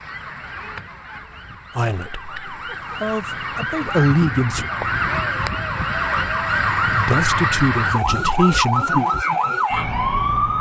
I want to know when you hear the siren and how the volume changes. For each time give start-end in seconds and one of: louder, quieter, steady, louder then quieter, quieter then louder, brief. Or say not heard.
0.0-10.5 louder.